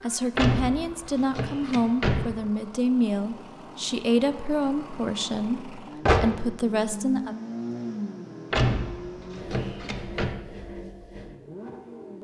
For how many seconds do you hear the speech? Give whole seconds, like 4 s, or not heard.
7 s.